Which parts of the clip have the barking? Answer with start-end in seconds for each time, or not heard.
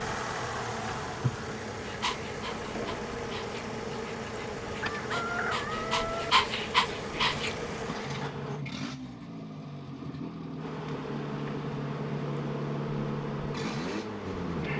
1.8-8.0.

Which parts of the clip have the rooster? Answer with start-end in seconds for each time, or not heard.
4.8-6.3.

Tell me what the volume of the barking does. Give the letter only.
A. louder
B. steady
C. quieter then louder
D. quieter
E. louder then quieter
A.